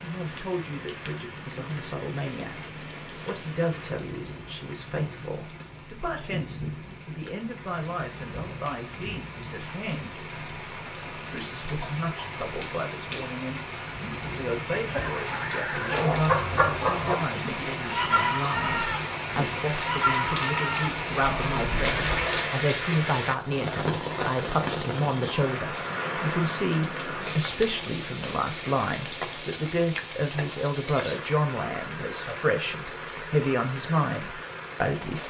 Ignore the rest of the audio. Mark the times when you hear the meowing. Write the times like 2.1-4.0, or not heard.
14.8-16.1.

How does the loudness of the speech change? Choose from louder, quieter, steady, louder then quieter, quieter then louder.
louder.